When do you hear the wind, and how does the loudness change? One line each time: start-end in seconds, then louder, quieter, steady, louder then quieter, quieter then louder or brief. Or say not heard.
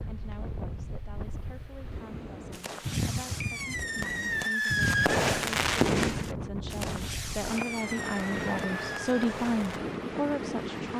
0.0-10.9 louder.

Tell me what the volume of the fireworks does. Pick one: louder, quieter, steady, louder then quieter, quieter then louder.
louder then quieter.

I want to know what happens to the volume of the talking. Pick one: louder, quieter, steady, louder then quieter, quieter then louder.
louder.